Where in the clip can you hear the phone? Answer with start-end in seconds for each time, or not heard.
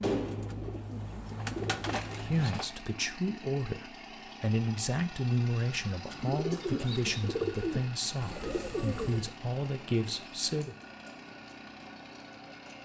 not heard.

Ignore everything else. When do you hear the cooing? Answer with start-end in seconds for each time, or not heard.
0.0-2.6, 6.0-9.3.